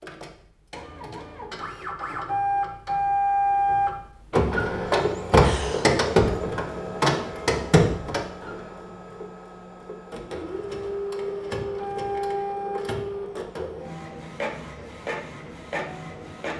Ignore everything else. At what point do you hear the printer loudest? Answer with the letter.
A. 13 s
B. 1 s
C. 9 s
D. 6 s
D.